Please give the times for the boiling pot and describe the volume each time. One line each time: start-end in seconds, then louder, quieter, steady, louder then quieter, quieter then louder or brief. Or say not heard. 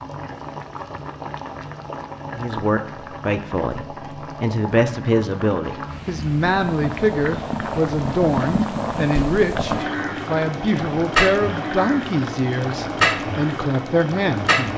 0.0-14.7 louder.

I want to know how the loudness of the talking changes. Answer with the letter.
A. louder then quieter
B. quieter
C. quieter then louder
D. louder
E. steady
E.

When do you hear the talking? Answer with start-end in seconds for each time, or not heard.
2.3-14.7.